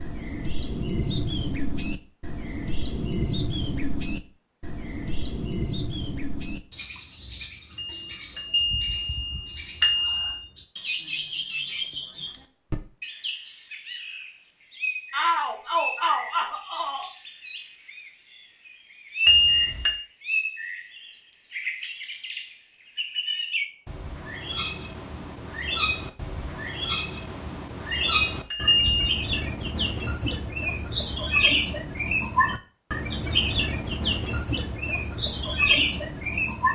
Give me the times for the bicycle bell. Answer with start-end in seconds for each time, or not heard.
7.8-10.4, 19.2-20.0, 27.9-29.1.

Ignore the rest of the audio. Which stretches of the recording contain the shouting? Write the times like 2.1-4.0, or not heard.
15.1-17.1.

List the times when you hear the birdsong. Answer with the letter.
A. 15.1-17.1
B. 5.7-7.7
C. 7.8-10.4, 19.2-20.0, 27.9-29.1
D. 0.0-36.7
D.